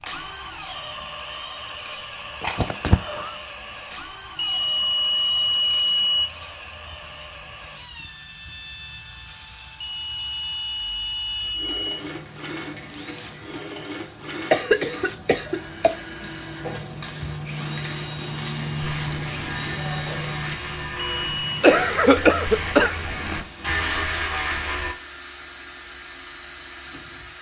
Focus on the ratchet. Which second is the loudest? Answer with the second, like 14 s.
24 s.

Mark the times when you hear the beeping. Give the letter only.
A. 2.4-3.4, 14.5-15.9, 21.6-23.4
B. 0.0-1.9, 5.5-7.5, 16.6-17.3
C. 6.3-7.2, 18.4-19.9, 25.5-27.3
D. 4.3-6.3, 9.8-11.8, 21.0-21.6
D.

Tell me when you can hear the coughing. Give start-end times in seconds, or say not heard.
2.4-3.4, 14.5-15.9, 21.6-23.4.